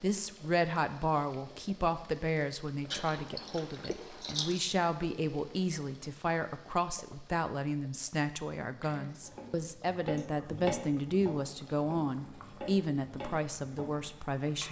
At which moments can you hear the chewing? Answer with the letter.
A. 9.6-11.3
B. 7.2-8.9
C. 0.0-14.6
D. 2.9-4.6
D.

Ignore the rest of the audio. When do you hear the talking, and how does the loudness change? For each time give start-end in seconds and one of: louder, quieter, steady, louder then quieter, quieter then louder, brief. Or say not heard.
0.0-14.6 steady.